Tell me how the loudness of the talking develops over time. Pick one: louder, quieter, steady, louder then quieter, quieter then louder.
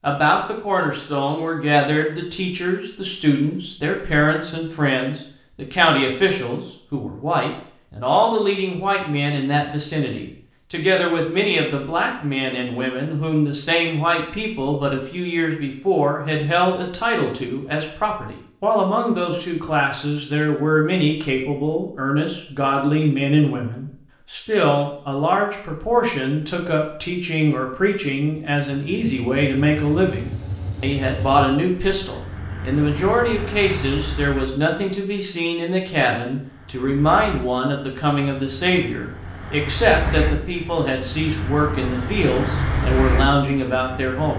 steady.